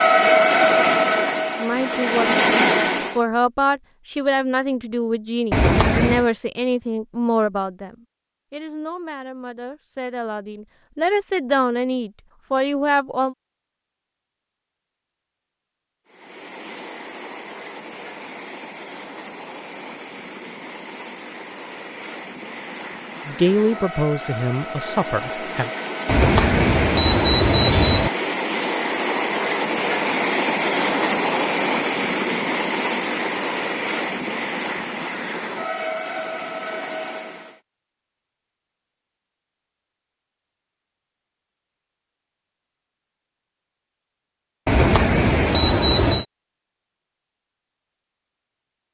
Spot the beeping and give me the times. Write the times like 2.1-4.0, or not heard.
5.5-6.2, 26.1-28.1, 44.6-46.2.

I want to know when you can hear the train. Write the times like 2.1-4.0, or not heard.
0.0-3.2, 16.1-37.6.